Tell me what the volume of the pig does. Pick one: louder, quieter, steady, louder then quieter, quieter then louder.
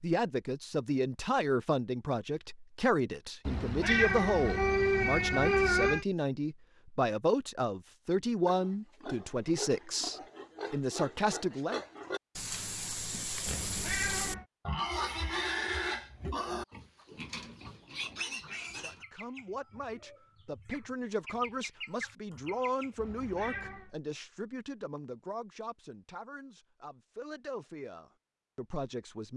louder then quieter.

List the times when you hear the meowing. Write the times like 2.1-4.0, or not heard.
3.5-6.0, 13.4-14.4, 22.9-23.9.